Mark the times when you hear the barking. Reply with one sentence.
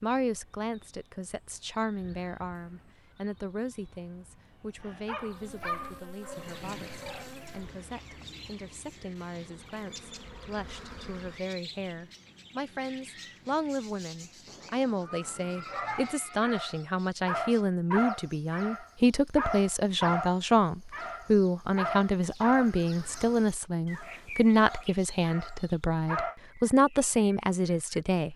The barking can be heard from 4.8 to 7.3 s and from 15.7 to 26.4 s.